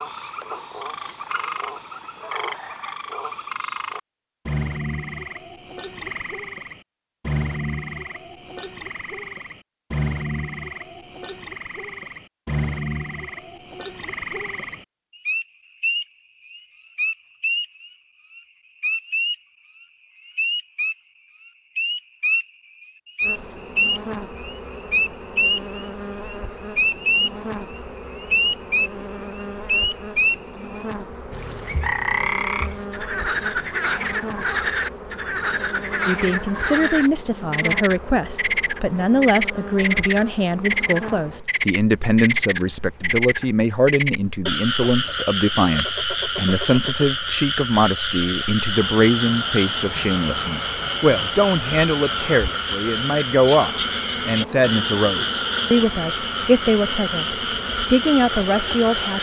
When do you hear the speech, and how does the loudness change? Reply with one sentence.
The speech can be heard from 36.0 to 59.1 s, at a steady volume.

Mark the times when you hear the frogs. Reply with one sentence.
You can hear the frogs from 0.0 to 59.1 s.